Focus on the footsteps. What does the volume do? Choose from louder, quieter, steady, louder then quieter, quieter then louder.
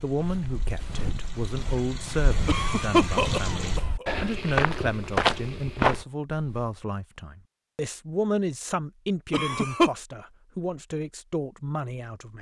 louder.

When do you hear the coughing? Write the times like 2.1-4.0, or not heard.
2.5-4.0, 9.3-9.9.